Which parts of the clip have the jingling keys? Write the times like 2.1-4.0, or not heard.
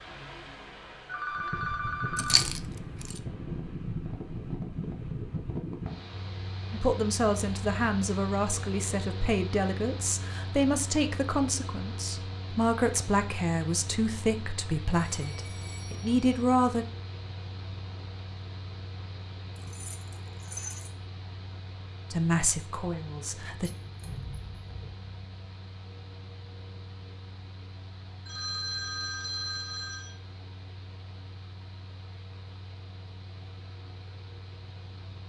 2.1-2.6, 19.6-20.9, 23.8-24.8.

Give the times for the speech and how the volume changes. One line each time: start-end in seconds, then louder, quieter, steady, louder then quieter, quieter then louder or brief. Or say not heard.
6.7-16.9 steady
22.1-23.7 brief.